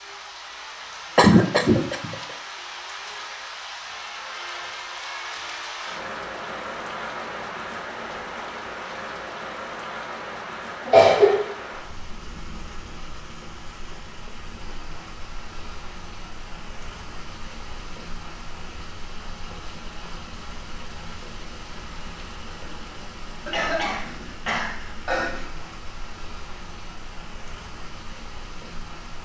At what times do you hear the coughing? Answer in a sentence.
The coughing can be heard from 1.1 to 2.1 s, from 10.8 to 11.5 s and from 23.4 to 25.4 s.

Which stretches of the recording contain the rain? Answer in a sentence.
You can hear the rain from 0.0 to 29.2 s.